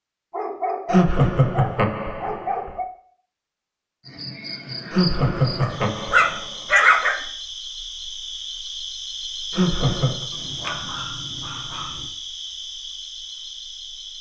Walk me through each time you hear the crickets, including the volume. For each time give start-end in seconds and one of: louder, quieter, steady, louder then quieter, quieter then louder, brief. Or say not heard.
4.0-14.1 steady.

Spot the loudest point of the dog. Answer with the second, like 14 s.
7 s.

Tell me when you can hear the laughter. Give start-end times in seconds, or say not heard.
0.9-2.7, 4.9-6.8, 9.5-10.2.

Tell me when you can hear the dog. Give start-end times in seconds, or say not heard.
0.3-2.9, 5.6-7.2, 10.3-12.1.